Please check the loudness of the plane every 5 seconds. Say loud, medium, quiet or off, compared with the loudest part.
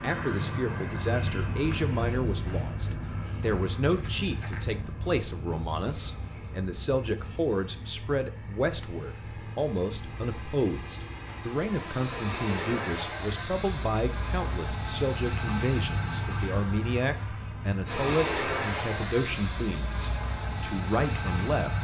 loud, medium, loud, loud, loud.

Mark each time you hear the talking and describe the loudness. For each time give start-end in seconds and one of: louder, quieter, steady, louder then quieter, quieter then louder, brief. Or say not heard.
0.0-21.7 steady.